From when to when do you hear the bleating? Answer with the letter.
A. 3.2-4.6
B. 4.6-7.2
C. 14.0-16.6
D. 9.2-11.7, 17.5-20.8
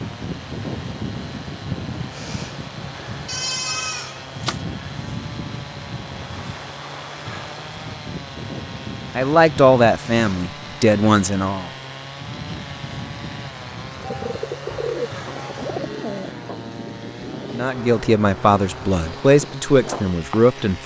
A.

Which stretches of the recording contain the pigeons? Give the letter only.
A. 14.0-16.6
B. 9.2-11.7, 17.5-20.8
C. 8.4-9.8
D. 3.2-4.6
A.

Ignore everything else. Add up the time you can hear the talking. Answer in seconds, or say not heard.
6 s.